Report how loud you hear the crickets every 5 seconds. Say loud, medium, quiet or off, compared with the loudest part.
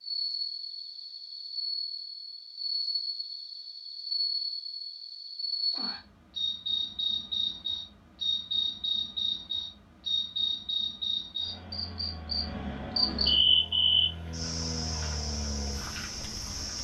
medium, loud, loud, medium.